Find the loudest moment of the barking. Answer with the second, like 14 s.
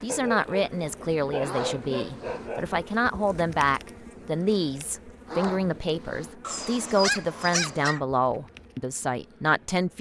7 s.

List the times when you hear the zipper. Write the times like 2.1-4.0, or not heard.
1.4-2.5, 5.2-6.3.